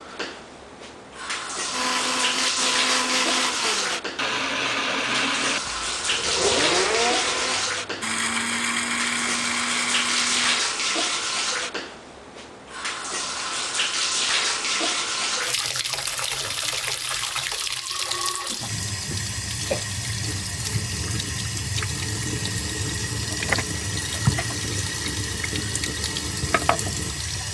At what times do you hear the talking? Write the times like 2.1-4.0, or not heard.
not heard.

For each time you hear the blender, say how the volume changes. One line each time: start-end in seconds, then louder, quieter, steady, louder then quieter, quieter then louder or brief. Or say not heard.
1.7-10.6 steady.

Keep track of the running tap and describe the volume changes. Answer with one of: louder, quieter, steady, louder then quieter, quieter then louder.
steady.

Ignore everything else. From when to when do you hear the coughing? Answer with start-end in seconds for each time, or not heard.
18.4-19.9.